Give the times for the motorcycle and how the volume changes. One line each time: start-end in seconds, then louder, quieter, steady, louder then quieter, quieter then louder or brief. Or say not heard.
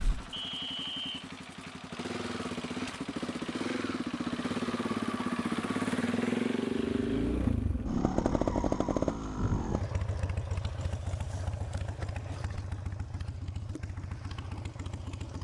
0.0-15.3 louder then quieter.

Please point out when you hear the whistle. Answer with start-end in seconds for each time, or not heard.
0.3-1.2.